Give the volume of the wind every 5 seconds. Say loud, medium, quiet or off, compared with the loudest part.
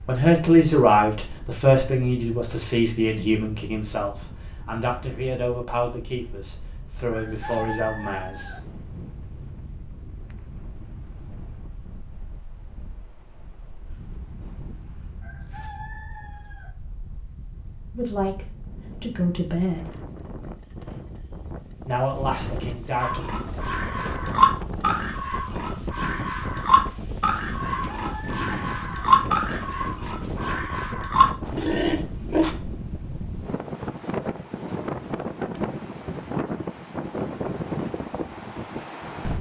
quiet, quiet, quiet, quiet, medium, loud, loud, loud.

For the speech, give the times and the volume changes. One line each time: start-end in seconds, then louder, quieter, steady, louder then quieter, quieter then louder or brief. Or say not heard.
0.1-8.6 quieter
17.9-19.9 brief
21.9-23.2 brief.